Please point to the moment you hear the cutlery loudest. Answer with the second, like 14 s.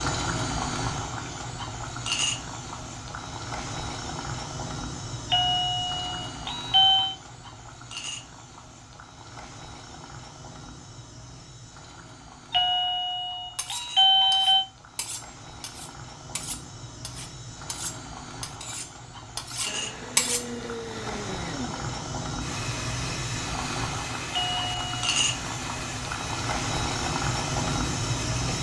20 s.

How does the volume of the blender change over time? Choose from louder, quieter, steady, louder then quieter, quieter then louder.
steady.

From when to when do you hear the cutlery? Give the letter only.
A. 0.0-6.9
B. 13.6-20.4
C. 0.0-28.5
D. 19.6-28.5
B.